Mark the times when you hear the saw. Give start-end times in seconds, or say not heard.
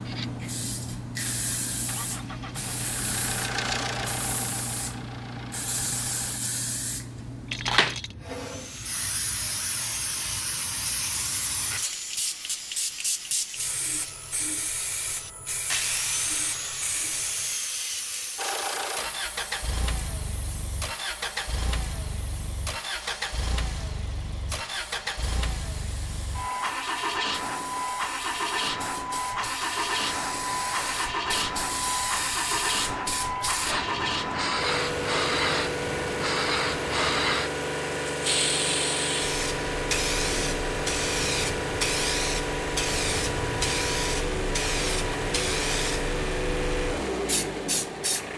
8.2-18.6.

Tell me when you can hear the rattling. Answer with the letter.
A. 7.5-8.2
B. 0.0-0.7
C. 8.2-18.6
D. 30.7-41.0
A.